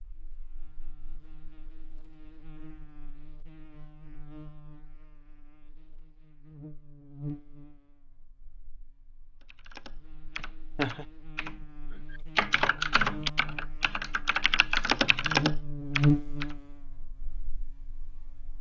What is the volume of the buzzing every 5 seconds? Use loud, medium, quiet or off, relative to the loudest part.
quiet, quiet, quiet, loud.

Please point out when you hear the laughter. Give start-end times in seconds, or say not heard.
10.3-11.1.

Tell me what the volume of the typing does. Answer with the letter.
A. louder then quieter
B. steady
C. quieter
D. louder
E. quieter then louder
E.